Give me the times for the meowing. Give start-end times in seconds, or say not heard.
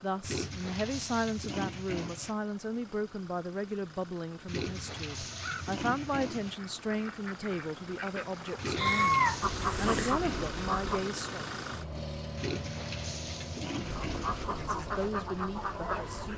8.8-10.2.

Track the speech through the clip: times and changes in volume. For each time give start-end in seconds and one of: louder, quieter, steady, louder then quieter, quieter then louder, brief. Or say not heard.
0.0-11.4 steady
14.4-16.3 brief.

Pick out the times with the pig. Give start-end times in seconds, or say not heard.
0.2-2.4, 4.5-6.5, 8.6-10.6, 12.3-14.5.